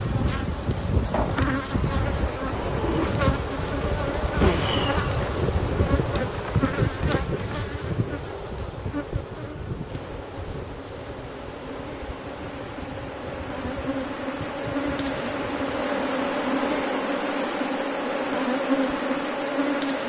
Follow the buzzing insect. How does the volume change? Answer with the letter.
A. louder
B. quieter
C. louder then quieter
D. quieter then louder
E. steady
D.